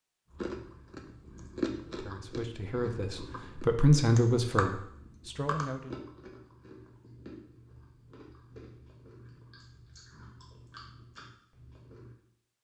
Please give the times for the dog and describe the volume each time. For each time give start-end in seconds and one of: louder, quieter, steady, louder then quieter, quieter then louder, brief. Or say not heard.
not heard.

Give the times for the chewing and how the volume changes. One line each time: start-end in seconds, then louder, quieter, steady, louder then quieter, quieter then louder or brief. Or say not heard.
0.3-12.2 quieter.